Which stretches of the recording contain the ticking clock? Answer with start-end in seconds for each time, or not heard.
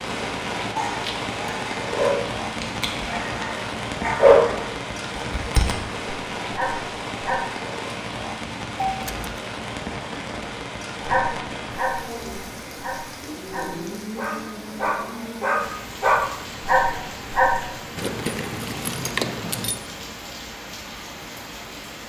not heard.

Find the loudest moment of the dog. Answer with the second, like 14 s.
4 s.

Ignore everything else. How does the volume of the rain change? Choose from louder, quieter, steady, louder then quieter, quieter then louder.
quieter.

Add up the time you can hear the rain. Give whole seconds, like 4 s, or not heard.
22 s.